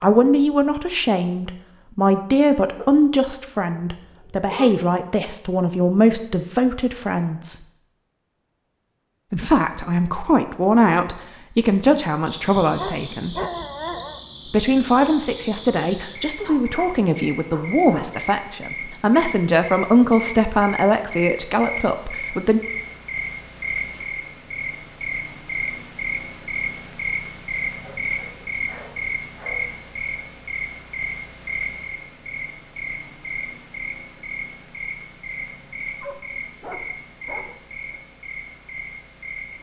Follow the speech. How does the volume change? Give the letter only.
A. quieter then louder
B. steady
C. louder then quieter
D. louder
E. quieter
B.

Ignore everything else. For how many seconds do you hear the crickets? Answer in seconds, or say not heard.
28 s.